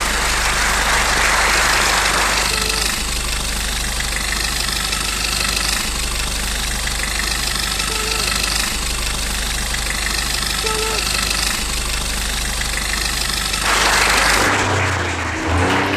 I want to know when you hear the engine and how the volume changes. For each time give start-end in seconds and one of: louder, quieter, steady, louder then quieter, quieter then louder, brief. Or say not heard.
0.0-15.9 steady.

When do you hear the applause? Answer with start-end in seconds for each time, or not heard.
0.0-2.5, 13.6-15.9.